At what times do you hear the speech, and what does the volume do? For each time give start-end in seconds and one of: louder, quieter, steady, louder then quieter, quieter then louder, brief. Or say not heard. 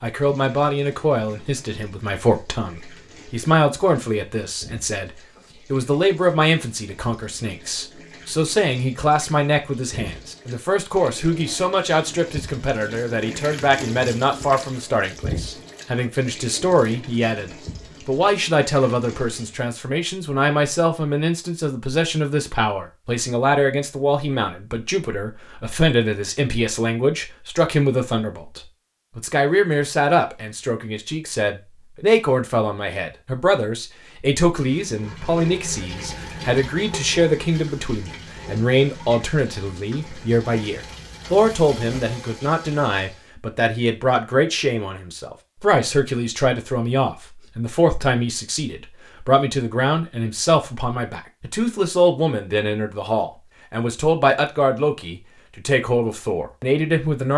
0.0-57.3 steady.